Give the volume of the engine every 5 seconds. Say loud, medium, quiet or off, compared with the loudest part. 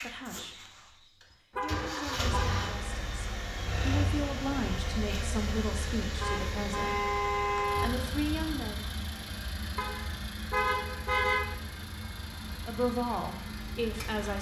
loud, loud, medium.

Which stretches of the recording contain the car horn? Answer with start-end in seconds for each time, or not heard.
1.6-2.7, 6.2-7.9, 9.8-11.6.